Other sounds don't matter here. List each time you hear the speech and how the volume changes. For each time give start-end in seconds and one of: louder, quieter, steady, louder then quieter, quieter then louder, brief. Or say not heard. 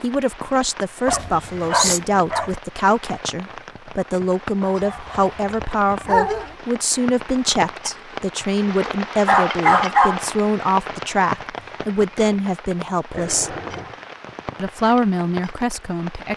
0.0-13.6 steady
14.6-16.3 brief.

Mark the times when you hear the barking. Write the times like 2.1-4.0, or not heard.
1.1-2.5, 4.6-6.5, 9.2-10.2, 13.1-13.9.